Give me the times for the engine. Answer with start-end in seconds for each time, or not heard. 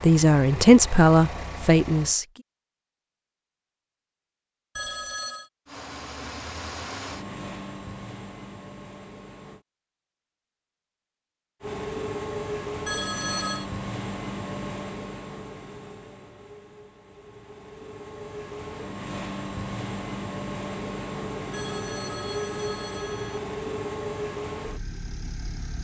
0.0-2.1, 5.7-9.7, 11.6-25.7.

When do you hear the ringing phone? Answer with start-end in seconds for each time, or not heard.
4.8-5.5, 12.8-13.7, 21.5-23.4.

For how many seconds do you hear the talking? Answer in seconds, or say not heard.
2 s.